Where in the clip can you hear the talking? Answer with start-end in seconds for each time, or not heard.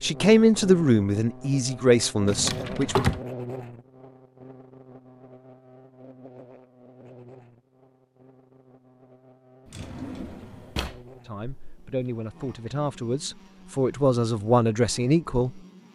0.0-3.0, 11.2-15.6.